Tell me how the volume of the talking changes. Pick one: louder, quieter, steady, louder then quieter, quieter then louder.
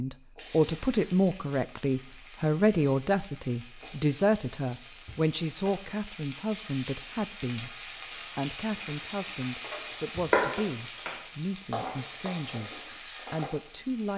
quieter.